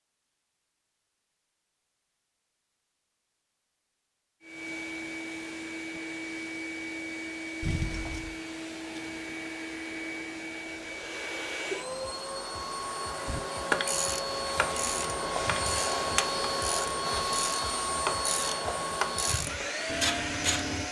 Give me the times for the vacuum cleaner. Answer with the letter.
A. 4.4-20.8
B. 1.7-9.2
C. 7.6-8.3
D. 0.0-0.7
A.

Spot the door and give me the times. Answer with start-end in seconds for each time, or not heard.
7.6-8.3.